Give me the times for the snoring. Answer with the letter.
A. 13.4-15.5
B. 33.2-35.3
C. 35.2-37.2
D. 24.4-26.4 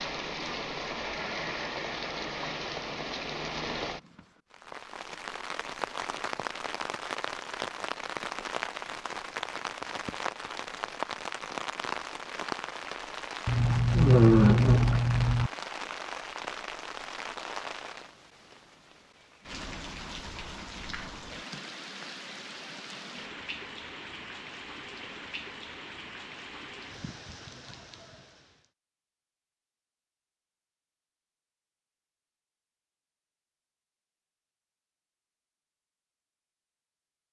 A.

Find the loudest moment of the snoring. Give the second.
14 s.